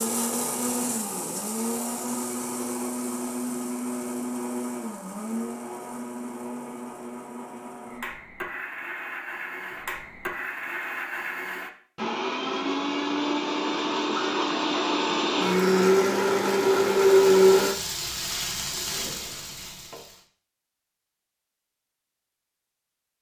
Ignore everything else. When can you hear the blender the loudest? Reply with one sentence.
The loudest moment of the blender is at 17 seconds.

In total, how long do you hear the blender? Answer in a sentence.
The blender can be heard for 18 seconds in total.